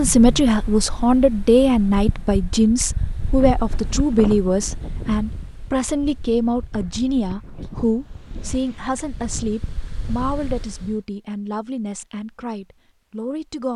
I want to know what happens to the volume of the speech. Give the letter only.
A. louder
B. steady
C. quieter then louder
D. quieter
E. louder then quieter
D.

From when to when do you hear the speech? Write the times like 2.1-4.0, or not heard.
0.0-13.7.